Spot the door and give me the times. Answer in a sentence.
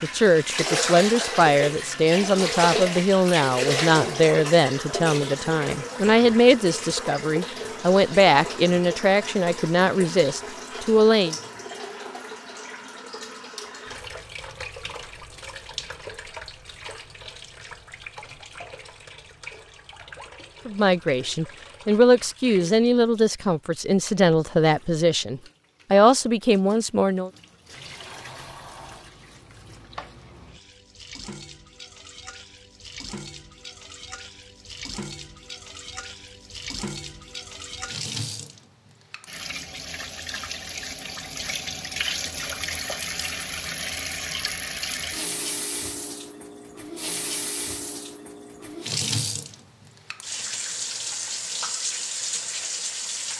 The door can be heard from 27.7 to 29.1 s.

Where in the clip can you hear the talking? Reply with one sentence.
You can hear the talking from 0.0 to 11.3 s and from 20.6 to 27.3 s.